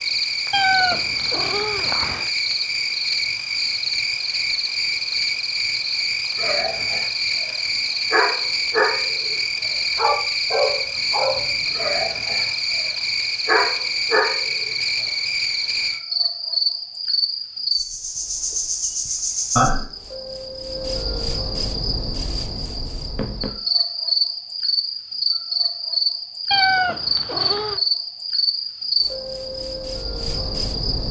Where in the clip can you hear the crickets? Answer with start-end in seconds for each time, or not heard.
0.0-31.0.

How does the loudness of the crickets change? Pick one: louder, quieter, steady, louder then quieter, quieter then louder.
steady.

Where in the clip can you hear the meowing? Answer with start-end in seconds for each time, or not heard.
0.5-2.3, 26.5-27.8.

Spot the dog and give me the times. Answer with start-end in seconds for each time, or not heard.
6.3-9.3, 9.9-14.4.